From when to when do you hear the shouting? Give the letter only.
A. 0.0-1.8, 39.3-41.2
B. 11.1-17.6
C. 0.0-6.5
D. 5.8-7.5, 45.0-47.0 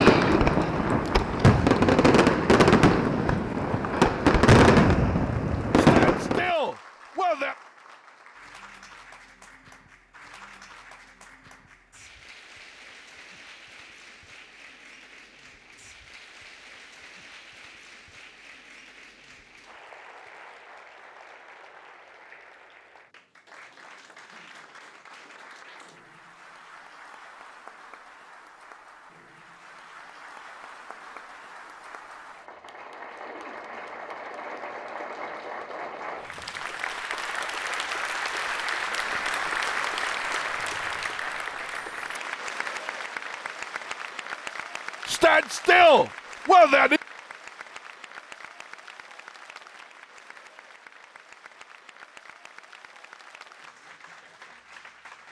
D.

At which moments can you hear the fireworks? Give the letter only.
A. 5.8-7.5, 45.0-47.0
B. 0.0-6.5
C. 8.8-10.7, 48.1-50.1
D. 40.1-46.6
B.